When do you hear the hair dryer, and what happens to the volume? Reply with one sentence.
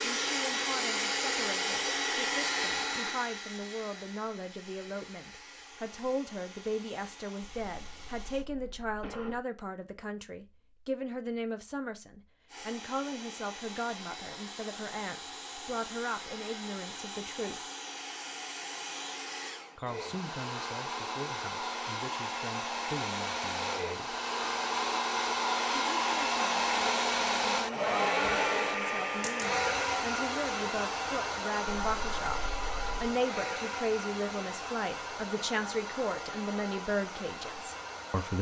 The hair dryer can be heard from 0.0 to 8.4 s, getting quieter; and from 12.4 to 38.3 s, getting louder then quieter.